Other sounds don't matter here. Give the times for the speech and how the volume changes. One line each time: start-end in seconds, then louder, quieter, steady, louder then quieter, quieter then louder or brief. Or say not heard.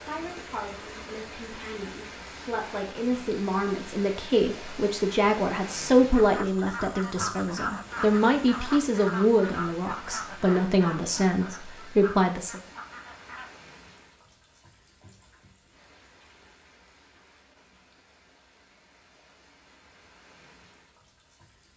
0.0-12.6 louder.